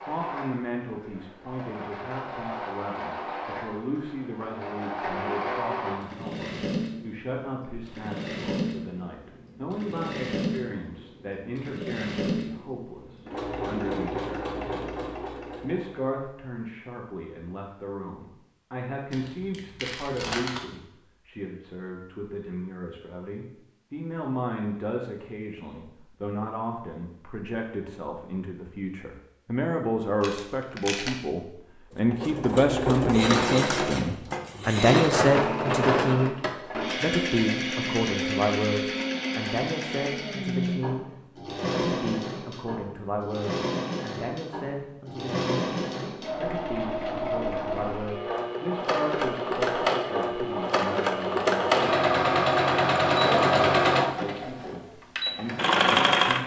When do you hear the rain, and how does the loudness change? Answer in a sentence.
You can't hear the rain here.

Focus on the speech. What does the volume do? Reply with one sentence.
The loudness of the speech goes up, then down.